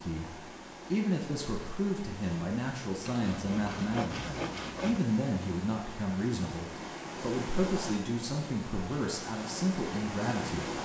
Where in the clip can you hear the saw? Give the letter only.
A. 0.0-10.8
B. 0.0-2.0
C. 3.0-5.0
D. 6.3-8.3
C.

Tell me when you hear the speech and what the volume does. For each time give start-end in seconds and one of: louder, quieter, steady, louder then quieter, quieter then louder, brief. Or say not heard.
0.0-10.8 steady.